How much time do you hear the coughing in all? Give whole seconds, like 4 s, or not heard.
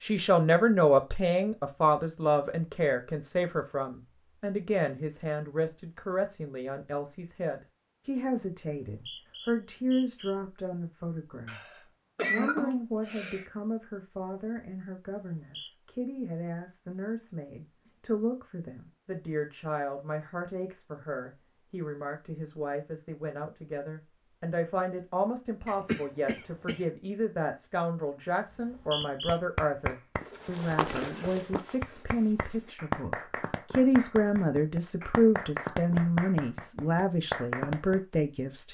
3 s.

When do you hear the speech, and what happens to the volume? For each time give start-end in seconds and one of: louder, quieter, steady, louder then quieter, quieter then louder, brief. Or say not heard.
0.0-38.7 quieter then louder.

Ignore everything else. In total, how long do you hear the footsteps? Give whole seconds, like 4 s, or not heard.
3 s.